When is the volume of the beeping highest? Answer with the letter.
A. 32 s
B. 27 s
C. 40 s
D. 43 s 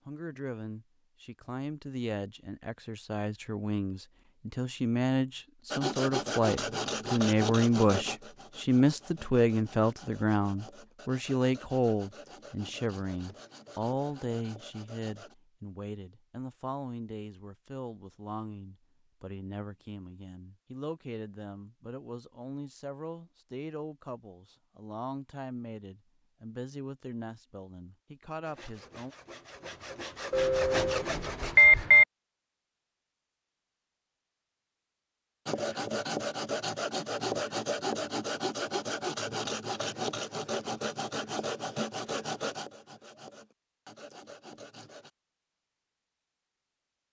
A.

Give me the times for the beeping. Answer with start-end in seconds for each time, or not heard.
30.3-32.0.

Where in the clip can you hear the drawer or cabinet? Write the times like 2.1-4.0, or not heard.
not heard.